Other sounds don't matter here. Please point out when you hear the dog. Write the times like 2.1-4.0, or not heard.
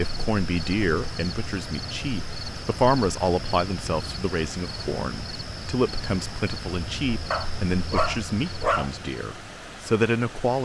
7.3-8.9.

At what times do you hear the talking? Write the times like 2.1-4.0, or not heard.
0.0-10.5.